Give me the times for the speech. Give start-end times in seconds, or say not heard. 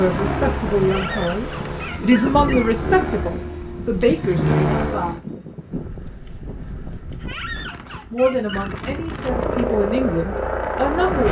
0.0-5.2, 7.6-11.2.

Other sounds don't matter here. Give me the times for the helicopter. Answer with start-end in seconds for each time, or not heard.
0.0-5.2, 9.2-11.2.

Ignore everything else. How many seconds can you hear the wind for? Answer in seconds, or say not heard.
11 s.